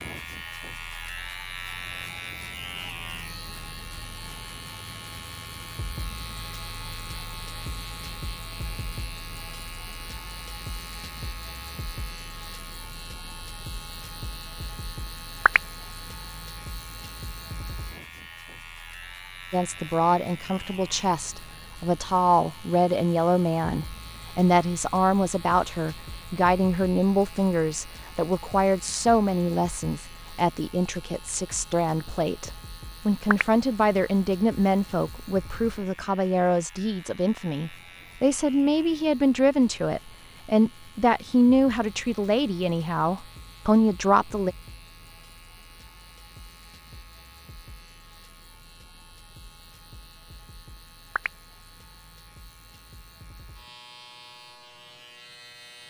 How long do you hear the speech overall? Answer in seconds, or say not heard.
25 s.